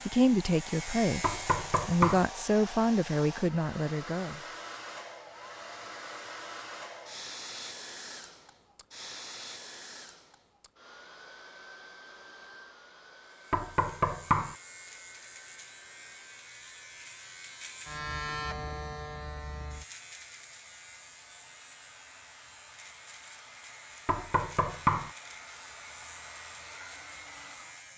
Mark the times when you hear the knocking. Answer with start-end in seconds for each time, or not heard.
1.2-2.2, 13.5-14.6, 24.1-25.1.